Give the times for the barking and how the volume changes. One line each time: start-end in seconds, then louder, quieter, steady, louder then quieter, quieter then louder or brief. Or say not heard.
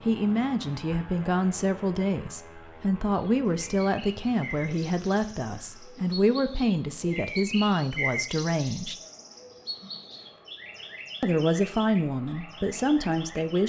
not heard.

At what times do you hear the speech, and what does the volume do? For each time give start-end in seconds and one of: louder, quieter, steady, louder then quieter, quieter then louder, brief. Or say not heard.
0.1-8.9 steady
11.2-13.6 brief.